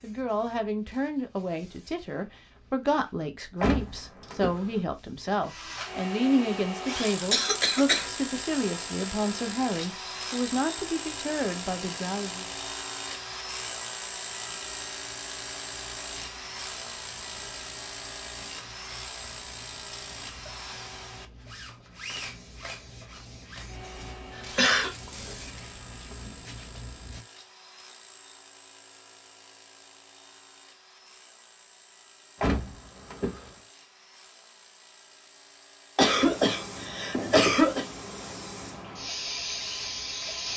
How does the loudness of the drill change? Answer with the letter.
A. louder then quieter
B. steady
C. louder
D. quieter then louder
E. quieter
E.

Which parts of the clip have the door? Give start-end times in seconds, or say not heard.
3.6-4.8, 32.4-33.5.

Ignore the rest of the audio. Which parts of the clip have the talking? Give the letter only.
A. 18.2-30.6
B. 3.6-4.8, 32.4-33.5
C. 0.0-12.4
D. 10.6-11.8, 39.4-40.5
C.